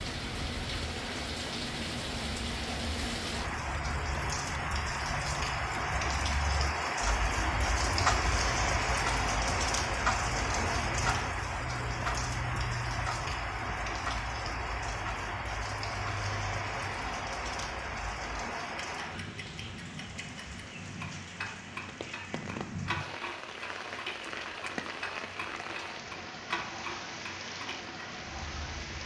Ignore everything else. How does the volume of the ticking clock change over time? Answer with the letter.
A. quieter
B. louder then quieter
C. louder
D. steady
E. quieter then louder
B.